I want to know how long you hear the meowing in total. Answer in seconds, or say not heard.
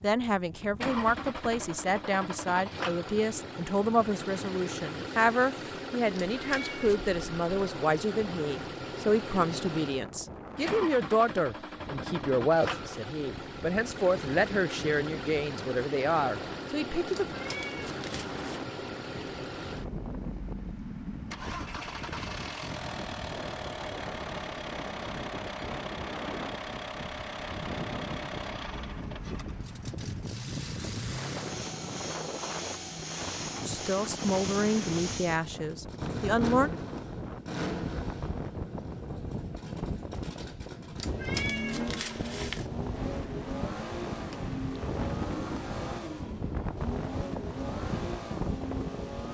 4 s.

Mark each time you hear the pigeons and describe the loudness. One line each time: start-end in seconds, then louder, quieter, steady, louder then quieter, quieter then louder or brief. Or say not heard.
not heard.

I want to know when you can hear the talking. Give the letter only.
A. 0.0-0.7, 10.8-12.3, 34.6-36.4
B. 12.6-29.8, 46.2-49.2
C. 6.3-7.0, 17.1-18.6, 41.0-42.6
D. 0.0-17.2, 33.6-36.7
D.